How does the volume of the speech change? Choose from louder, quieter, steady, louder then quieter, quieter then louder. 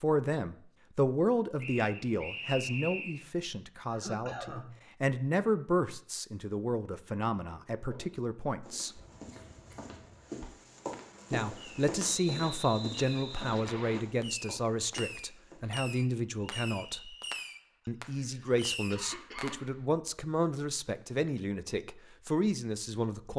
steady.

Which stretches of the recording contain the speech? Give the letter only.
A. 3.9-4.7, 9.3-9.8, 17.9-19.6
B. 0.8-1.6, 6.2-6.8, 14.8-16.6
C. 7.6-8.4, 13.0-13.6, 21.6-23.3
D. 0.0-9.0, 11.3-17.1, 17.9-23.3
D.